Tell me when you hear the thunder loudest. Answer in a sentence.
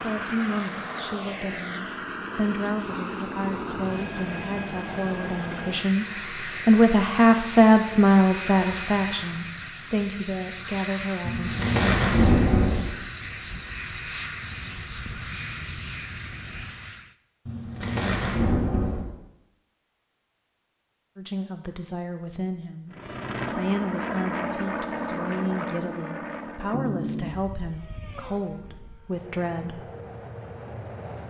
The loudest moment of the thunder is at 12 seconds.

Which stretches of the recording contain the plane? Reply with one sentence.
The plane can be heard from 0.0 to 17.1 s and from 22.9 to 31.2 s.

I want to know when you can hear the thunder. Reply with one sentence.
You can hear the thunder from 11.2 to 12.8 s and from 17.4 to 19.1 s.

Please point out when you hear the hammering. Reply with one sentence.
You can't hear the hammering here.